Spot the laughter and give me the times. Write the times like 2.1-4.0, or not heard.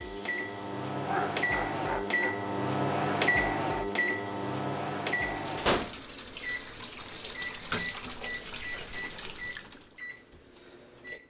1.1-2.4.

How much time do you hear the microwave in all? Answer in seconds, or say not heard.
11 s.